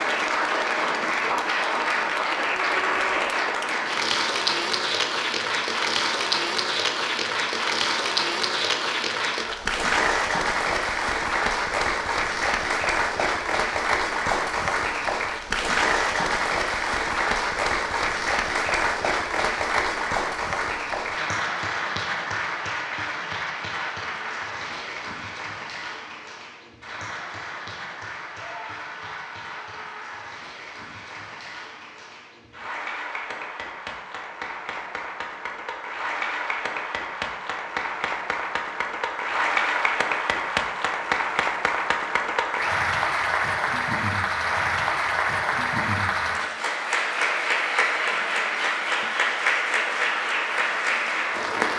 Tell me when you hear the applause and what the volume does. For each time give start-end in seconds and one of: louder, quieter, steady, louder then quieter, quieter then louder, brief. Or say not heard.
0.0-51.7 quieter then louder.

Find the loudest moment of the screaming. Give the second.
3 s.